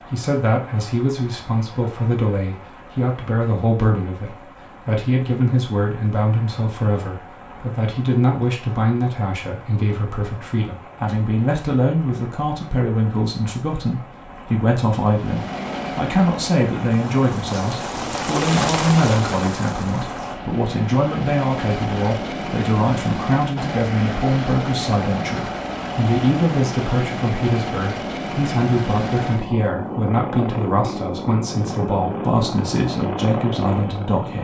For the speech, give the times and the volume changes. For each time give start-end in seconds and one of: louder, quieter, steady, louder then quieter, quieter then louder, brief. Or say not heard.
0.0-34.3 steady.